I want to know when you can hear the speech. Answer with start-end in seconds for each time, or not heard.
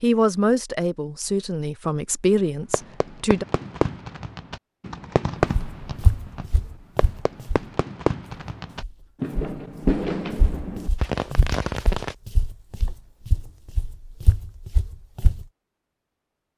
0.0-3.5.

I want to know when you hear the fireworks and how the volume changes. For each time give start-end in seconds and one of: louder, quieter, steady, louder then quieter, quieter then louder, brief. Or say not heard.
2.7-12.2 steady.